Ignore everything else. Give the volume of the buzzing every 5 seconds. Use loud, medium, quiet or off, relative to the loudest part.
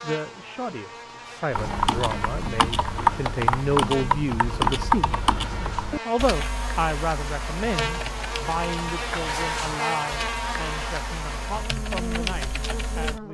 medium, loud, loud.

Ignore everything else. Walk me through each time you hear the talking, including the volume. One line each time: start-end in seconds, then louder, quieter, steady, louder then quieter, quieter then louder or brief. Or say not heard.
0.0-13.2 louder then quieter.